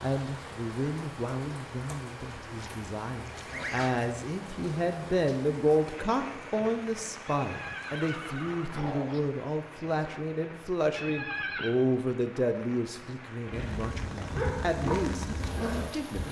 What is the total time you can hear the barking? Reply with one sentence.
You can hear the barking for 3 seconds altogether.